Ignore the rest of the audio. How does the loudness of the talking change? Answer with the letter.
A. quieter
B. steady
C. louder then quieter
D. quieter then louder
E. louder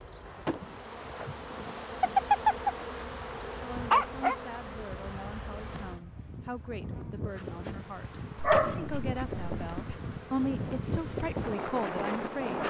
E.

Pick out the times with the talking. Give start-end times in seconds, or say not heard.
3.5-12.6.